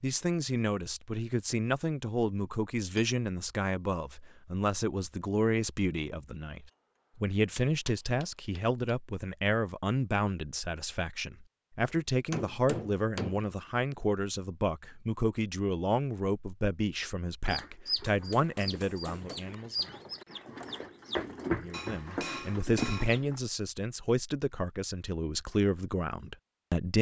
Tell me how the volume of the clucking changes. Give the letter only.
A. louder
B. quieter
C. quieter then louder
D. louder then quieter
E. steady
C.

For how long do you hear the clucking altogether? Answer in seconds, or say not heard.
6 s.